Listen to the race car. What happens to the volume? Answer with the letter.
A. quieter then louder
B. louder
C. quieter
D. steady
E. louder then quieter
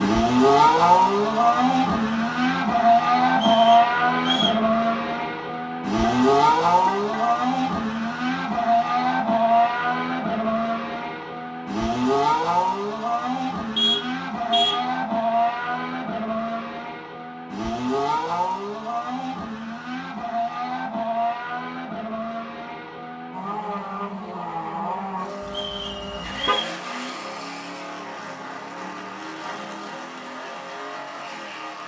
C.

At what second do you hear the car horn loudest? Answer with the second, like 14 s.
14 s.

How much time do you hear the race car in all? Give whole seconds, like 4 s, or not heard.
32 s.